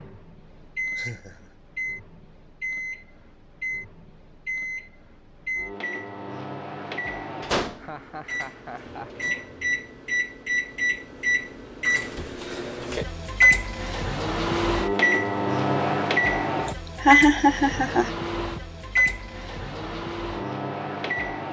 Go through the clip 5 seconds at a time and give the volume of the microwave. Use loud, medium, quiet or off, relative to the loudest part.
medium, medium, loud, loud, medium.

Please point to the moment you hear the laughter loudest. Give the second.
17 s.